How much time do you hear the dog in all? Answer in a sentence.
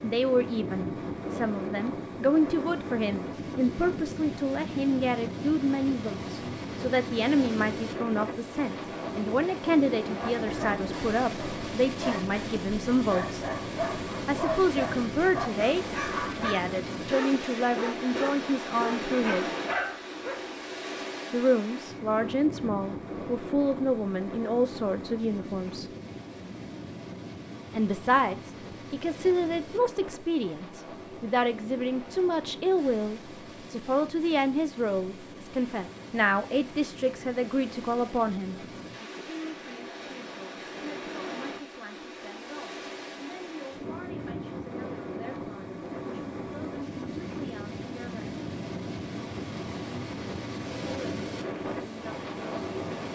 You can hear the dog for 10 seconds altogether.